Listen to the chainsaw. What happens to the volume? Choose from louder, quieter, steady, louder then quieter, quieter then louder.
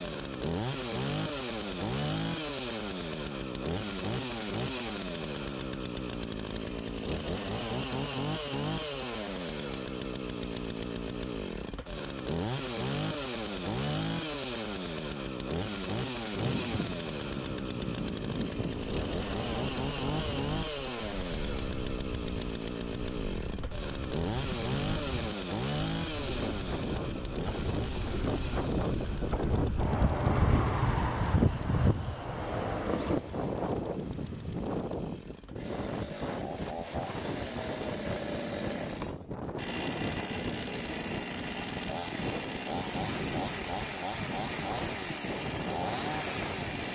quieter then louder.